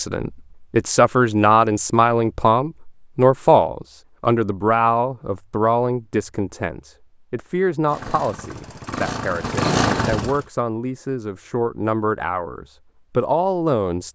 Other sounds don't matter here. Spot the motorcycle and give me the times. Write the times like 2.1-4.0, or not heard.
7.8-10.4.